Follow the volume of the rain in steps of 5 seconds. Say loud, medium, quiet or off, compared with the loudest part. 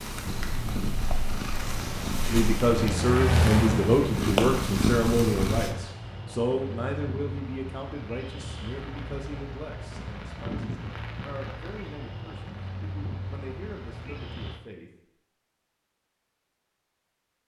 loud, medium, medium, off.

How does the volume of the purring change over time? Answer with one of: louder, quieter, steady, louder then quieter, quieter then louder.
louder.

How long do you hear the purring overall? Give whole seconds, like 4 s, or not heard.
6 s.